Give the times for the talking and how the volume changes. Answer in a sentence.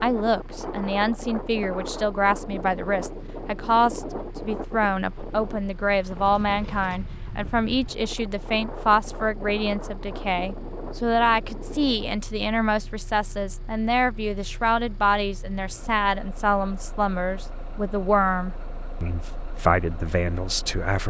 You can hear the talking from 0.0 to 21.0 s, at a steady volume.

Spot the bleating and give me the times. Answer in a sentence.
You can't hear the bleating here.